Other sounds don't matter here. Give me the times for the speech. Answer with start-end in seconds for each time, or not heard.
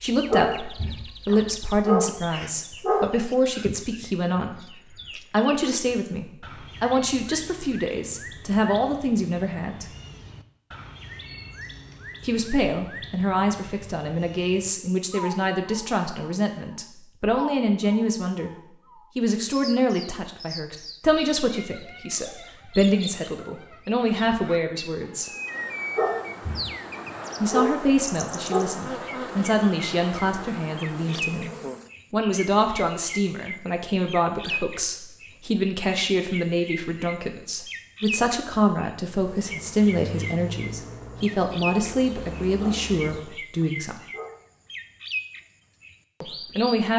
0.0-4.7, 5.3-9.8, 12.2-18.6, 19.1-25.3, 27.4-44.0, 46.2-46.9.